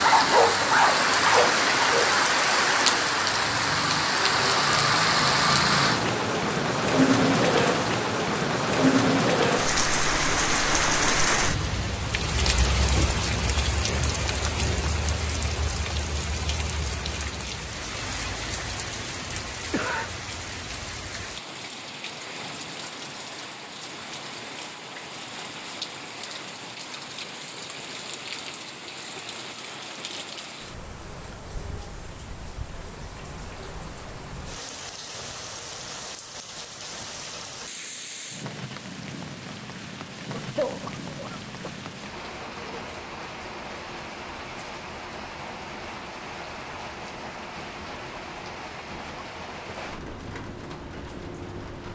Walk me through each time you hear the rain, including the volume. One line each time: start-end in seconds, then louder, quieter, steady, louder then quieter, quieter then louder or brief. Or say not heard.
0.0-51.8 quieter.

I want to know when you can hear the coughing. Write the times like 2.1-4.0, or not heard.
19.2-20.1, 40.3-41.9.